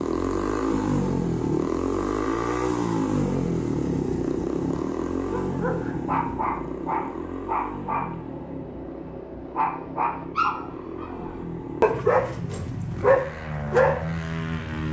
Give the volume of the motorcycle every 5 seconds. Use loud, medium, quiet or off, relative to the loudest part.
loud, medium, medium.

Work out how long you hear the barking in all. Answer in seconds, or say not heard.
9 s.